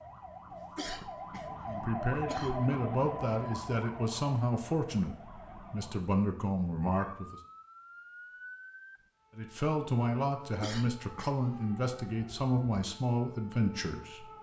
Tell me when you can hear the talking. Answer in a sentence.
You can hear the talking from 1.6 to 7.4 s and from 9.3 to 14.3 s.